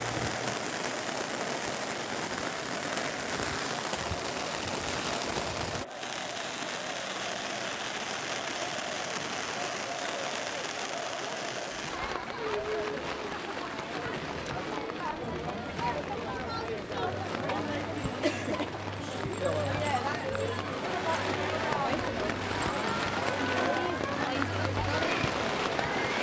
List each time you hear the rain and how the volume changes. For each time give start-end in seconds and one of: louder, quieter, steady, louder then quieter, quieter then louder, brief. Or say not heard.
0.0-26.1 quieter then louder.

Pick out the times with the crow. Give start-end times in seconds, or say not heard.
not heard.